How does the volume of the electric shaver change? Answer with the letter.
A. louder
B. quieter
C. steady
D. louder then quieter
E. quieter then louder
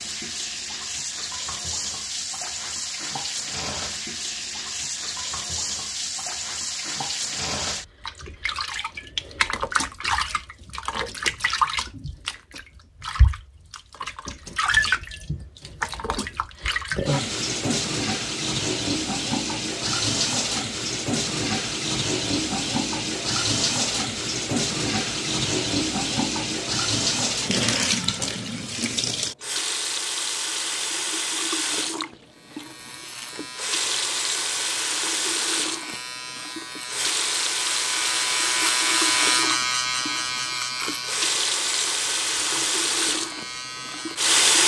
D.